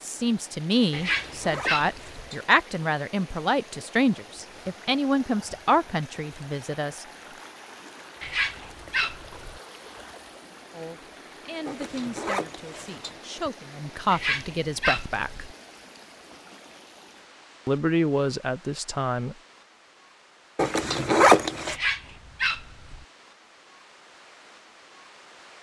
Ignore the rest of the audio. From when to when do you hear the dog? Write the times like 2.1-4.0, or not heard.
0.9-2.3, 8.2-9.6, 14.1-15.4, 21.6-23.1.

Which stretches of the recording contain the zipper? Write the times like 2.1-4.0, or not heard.
0.9-2.5, 11.7-13.2, 20.6-21.8.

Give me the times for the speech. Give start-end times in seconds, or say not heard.
0.0-7.0, 10.7-15.5, 17.6-19.4.